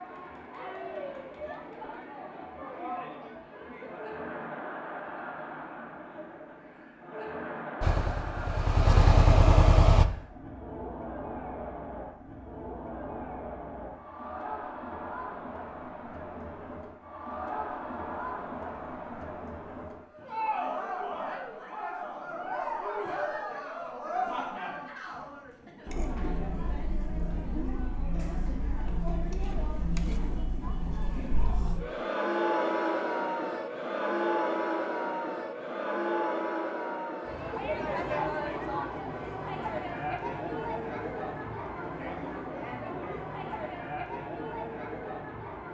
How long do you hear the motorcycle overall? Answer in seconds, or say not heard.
2 s.